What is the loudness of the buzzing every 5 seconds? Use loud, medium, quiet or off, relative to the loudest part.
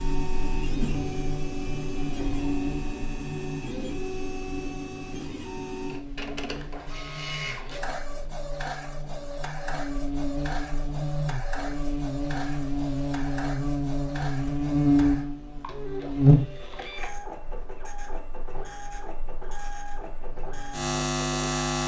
medium, quiet, loud, loud, loud.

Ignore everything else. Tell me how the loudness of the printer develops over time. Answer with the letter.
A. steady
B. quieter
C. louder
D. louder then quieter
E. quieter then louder
B.